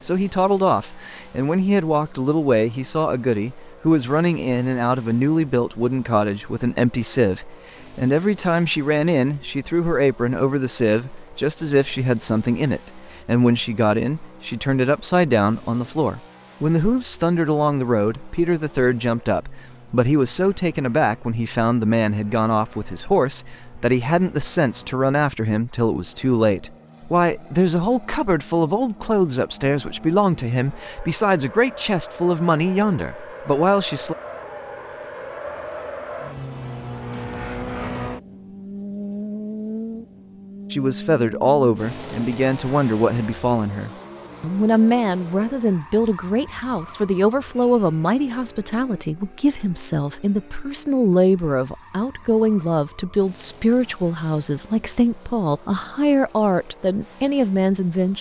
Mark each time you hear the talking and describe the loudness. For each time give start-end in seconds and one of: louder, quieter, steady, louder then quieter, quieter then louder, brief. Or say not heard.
0.0-34.1 steady
40.7-58.1 steady.